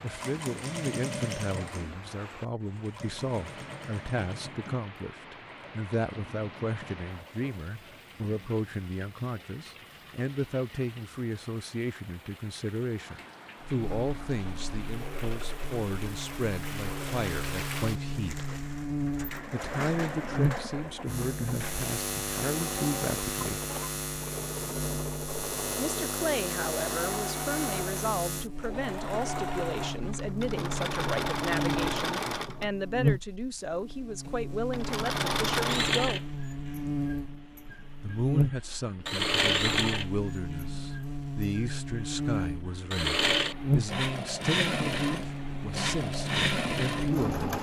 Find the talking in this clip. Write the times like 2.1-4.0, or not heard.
0.0-18.4, 19.5-23.6, 25.8-36.2, 38.0-47.5.